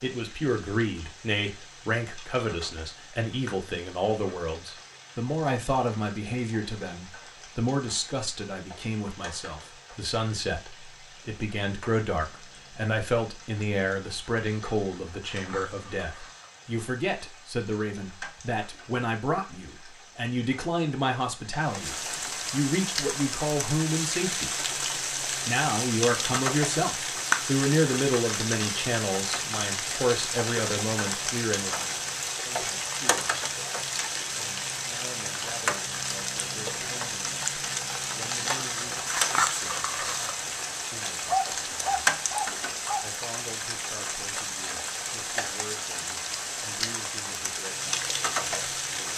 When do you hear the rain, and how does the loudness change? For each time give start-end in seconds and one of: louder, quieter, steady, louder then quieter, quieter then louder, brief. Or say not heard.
0.0-49.1 louder.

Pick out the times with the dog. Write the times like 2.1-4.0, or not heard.
41.2-43.1.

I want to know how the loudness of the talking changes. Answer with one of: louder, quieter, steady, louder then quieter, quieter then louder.
quieter.